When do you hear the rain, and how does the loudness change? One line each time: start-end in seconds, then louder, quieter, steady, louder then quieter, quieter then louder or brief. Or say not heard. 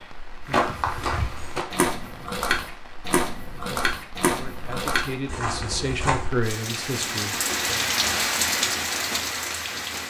0.0-10.0 louder.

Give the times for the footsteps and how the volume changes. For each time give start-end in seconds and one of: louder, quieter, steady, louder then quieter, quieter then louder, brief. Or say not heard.
0.5-6.3 steady.